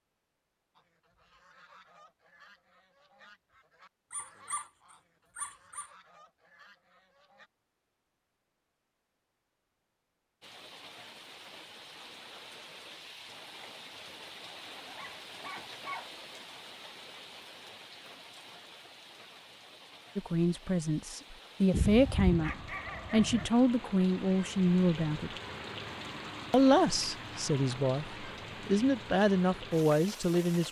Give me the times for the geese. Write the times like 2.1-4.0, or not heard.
0.8-7.5.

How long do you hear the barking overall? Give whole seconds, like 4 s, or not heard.
5 s.